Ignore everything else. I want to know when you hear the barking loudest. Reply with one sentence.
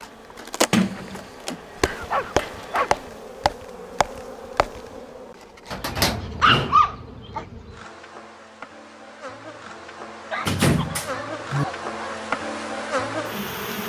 The loudest moment of the barking is at 7 seconds.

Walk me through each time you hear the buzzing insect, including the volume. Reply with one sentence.
You can hear the buzzing insect from 0.0 to 13.8 s, getting quieter then louder.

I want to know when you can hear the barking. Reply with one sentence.
The barking can be heard from 1.5 to 3.0 s, from 6.0 to 7.5 s and from 10.3 to 12.2 s.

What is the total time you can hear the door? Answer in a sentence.
You can hear the door for 3 seconds altogether.